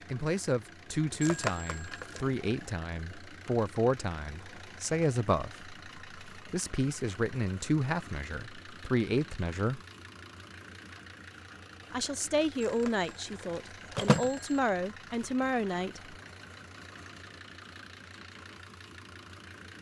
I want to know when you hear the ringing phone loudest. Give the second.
14 s.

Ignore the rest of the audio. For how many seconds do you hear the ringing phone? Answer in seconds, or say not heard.
3 s.